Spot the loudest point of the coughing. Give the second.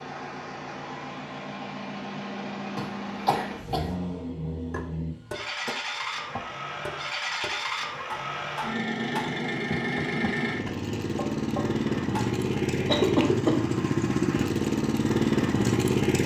13 s.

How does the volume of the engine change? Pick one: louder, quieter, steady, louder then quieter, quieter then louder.
louder.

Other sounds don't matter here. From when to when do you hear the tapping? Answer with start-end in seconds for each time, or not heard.
4.7-12.3.